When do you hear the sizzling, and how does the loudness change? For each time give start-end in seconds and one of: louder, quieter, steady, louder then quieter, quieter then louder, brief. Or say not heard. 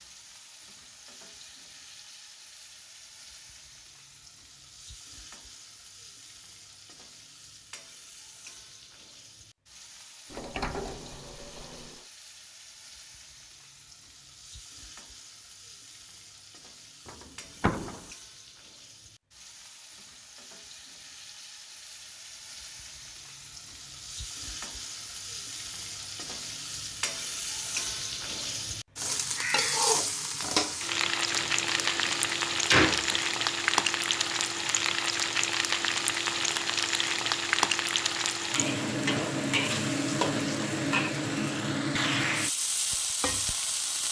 0.0-44.0 louder.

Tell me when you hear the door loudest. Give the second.
33 s.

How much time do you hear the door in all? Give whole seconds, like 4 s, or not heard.
5 s.